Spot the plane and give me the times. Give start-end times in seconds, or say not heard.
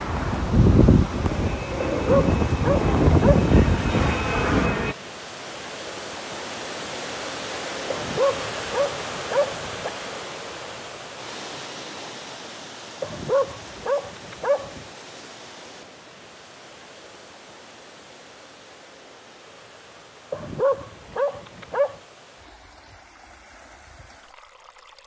0.0-5.0.